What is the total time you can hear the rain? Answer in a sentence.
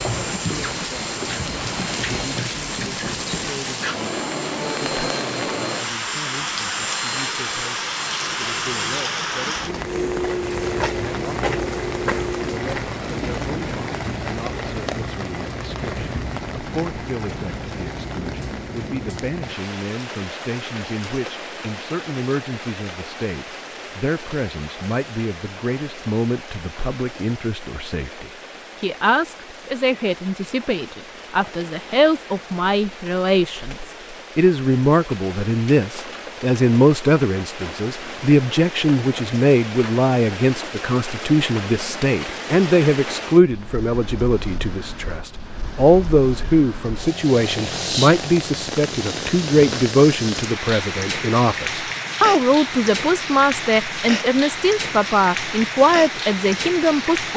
You can hear the rain for 57 seconds altogether.